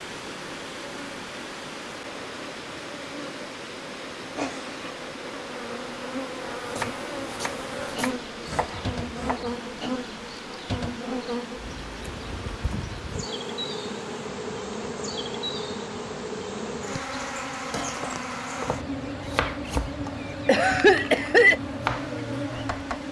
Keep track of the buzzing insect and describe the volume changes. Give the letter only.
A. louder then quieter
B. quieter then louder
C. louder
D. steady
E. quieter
C.